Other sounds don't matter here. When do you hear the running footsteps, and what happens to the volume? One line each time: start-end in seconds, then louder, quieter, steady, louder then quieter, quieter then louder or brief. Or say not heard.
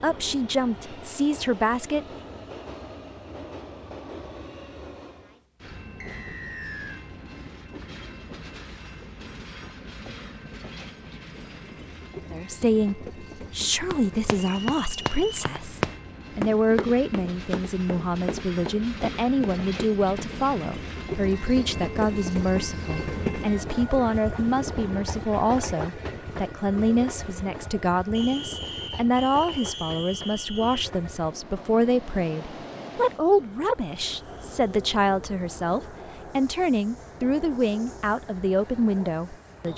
13.9-20.4 louder then quieter.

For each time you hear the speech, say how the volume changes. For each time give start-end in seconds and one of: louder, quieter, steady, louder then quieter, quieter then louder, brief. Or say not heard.
0.0-2.0 brief
12.3-39.7 steady.